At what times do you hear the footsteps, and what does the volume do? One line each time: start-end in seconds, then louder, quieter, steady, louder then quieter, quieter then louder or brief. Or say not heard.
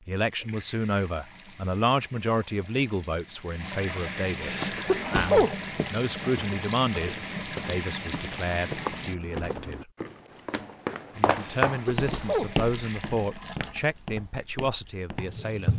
4.5-15.4 louder then quieter.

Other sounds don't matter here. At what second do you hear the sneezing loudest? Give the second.
5 s.